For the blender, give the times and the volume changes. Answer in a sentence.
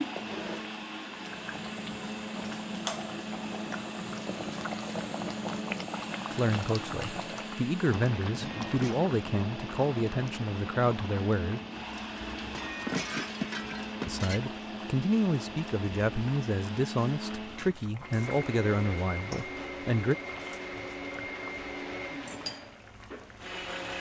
You can hear the blender from 0.0 to 23.9 s, at a steady volume.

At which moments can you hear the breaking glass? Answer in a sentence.
The breaking glass can be heard from 8.2 to 9.1 s and from 12.3 to 14.4 s.